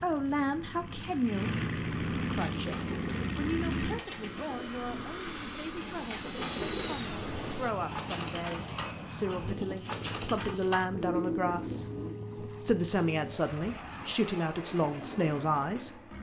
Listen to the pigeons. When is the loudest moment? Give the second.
11 s.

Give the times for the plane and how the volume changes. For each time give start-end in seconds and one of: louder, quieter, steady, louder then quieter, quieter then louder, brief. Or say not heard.
0.0-16.1 quieter.